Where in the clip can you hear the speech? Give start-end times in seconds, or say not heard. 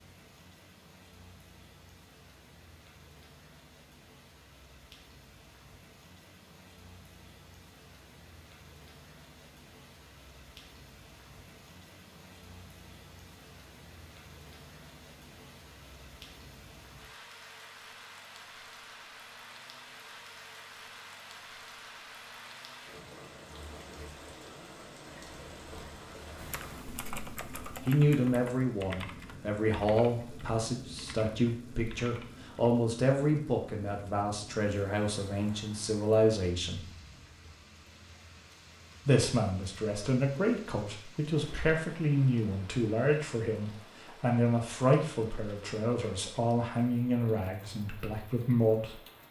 27.9-36.9, 39.0-49.0.